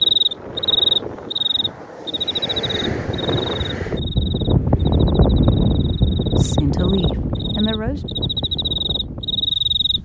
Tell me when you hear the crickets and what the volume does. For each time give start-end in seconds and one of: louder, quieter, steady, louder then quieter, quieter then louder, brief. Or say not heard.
0.0-10.0 quieter then louder.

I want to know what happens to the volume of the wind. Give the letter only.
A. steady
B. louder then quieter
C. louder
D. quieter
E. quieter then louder
B.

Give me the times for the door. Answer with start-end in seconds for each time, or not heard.
not heard.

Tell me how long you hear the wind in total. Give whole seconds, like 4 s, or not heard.
10 s.